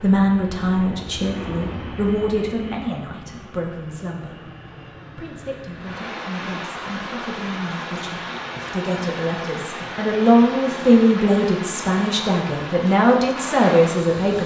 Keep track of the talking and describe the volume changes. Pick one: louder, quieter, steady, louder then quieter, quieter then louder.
quieter then louder.